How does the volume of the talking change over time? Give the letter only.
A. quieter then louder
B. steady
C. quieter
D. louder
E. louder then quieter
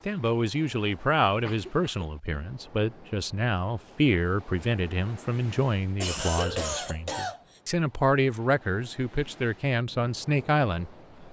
B.